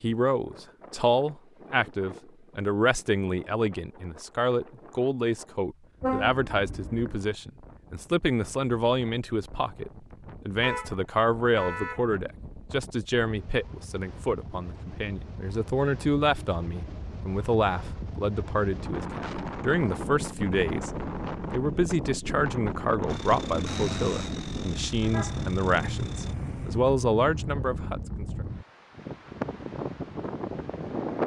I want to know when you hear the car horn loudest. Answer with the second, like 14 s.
6 s.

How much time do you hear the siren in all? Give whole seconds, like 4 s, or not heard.
not heard.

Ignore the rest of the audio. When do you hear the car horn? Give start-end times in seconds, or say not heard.
6.0-7.2, 10.6-12.0, 25.0-26.9.